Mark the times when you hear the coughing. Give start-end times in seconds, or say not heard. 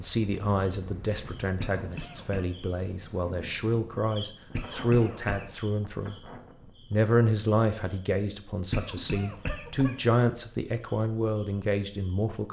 1.6-2.5, 4.5-5.5, 8.7-10.0.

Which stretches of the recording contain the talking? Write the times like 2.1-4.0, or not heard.
0.0-6.2, 6.9-12.4.